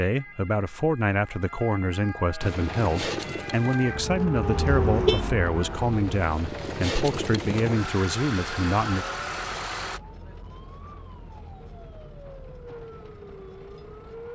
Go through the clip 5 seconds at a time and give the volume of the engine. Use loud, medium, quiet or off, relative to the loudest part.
loud, loud, off.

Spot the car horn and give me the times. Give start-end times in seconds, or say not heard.
4.5-5.2.